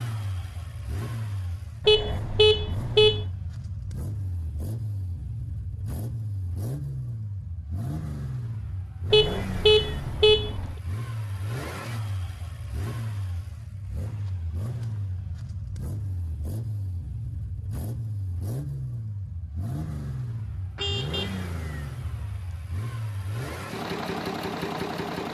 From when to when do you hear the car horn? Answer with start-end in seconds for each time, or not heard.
1.8-3.2, 9.1-10.8, 20.8-21.5.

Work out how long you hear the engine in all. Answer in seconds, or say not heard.
25 s.